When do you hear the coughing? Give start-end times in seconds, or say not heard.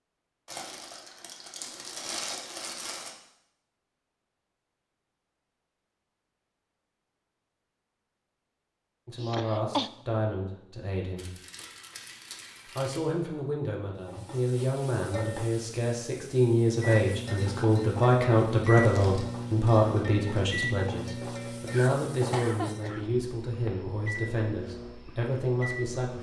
9.2-9.9, 21.7-23.1.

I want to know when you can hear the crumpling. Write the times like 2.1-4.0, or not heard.
0.5-3.1, 11.2-13.0, 18.8-19.3.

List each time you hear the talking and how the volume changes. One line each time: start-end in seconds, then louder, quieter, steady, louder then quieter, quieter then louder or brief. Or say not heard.
9.1-11.3 brief
12.8-26.1 louder then quieter.